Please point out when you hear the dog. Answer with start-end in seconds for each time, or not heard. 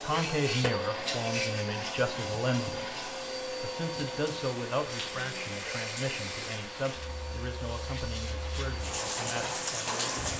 not heard.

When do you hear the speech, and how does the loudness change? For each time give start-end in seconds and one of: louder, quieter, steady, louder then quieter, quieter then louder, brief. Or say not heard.
0.0-10.1 quieter.